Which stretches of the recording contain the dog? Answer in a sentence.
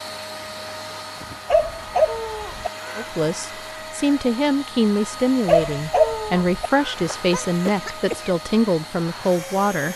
The dog can be heard from 1.4 to 2.7 s and from 5.5 to 6.7 s.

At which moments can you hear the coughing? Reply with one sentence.
You can hear the coughing from 2.0 to 3.1 s and from 6.0 to 8.3 s.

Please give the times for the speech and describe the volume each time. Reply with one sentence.
You can hear the speech from 3.0 to 9.9 s, at a steady volume.